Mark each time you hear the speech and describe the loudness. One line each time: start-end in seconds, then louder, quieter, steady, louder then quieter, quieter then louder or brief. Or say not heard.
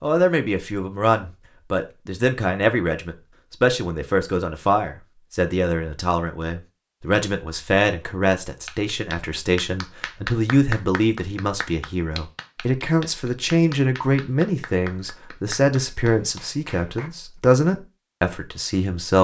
0.0-19.2 steady.